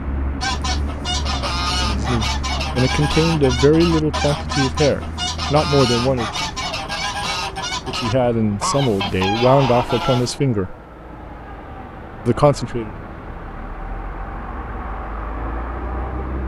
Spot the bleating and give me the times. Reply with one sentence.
The bleating can't be heard in this clip.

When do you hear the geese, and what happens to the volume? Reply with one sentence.
The geese can be heard from 0.4 to 10.3 s, at a steady volume.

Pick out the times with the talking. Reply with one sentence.
You can hear the talking from 1.8 to 6.5 s, from 7.8 to 10.8 s and from 12.2 to 12.9 s.